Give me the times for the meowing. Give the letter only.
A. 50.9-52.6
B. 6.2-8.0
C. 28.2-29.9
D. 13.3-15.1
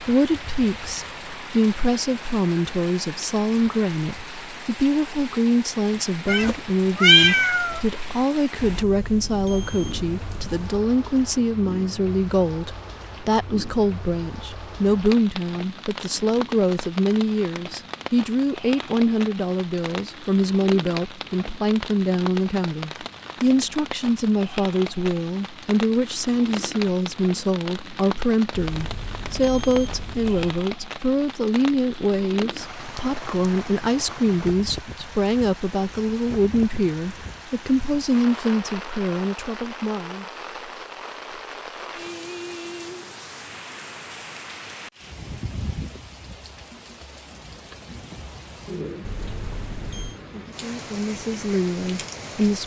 B.